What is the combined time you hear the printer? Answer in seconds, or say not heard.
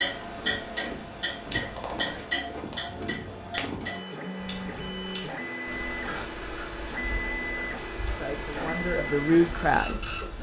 10 s.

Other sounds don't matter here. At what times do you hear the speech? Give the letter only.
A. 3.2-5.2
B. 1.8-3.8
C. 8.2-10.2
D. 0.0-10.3
C.